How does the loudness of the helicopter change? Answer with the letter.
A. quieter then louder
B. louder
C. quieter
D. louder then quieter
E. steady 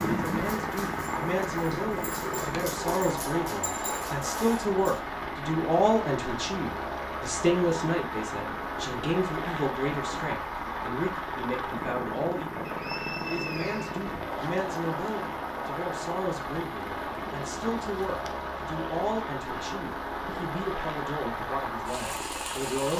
E.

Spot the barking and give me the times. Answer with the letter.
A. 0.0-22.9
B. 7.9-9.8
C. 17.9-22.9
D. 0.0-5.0
D.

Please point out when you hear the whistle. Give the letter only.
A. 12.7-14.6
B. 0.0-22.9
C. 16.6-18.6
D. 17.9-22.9
A.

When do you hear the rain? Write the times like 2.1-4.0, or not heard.
0.0-22.9.